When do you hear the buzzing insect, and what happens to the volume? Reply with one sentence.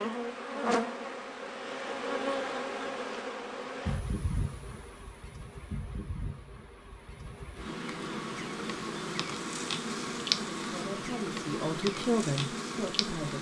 You can hear the buzzing insect from 0.0 to 13.3 s, getting quieter then louder.